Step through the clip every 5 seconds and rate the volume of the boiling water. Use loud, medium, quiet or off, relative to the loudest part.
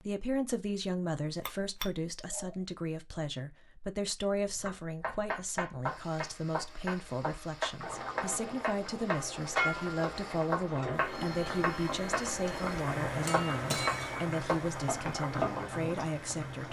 off, loud, loud, loud.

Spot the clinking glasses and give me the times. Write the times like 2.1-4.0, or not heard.
1.4-2.5, 13.2-14.2.